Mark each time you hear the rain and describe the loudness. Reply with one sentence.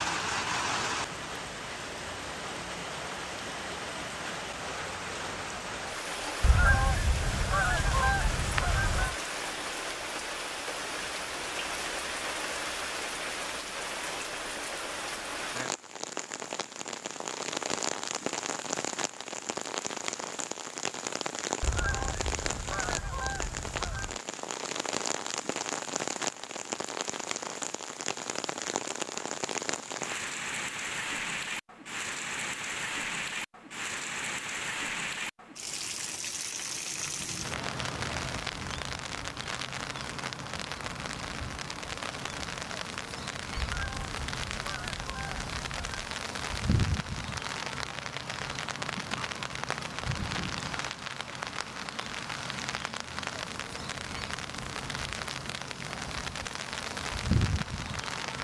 You can hear the rain from 0.0 to 58.4 s, at a steady volume.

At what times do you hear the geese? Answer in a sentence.
The geese can be heard from 6.4 to 9.2 s, from 21.6 to 24.2 s and from 43.6 to 46.1 s.